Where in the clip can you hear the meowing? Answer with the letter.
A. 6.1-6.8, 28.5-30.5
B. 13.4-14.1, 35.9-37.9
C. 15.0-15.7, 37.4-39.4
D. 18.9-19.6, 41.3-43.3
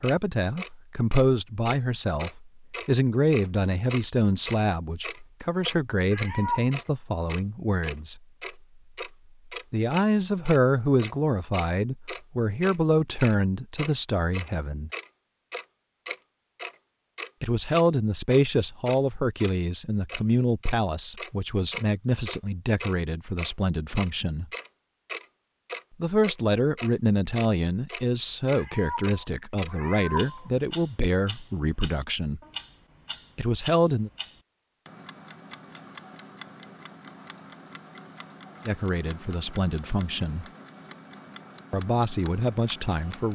A.